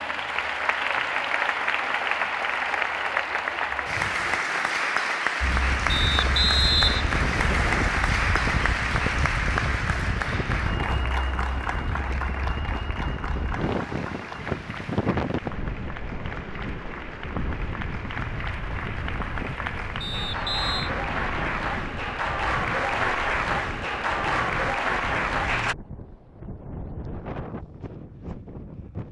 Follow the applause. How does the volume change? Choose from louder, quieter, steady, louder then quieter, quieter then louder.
quieter then louder.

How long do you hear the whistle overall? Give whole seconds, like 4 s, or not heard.
3 s.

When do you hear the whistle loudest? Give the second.
7 s.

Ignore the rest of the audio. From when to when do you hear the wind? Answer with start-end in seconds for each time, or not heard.
5.4-29.0.